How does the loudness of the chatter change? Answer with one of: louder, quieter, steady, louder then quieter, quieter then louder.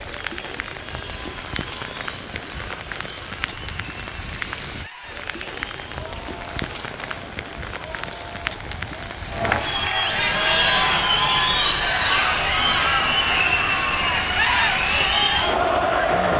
louder.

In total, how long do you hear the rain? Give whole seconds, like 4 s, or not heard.
16 s.